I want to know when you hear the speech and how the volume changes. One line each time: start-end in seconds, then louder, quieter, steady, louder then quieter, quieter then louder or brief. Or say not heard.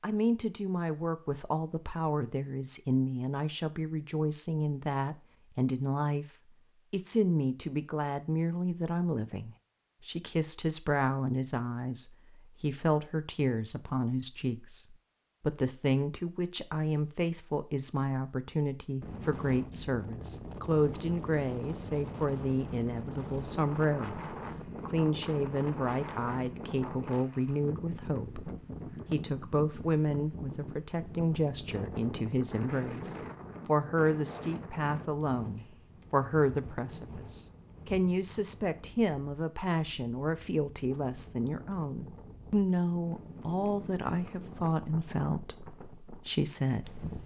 0.0-6.2 steady
6.9-47.1 steady.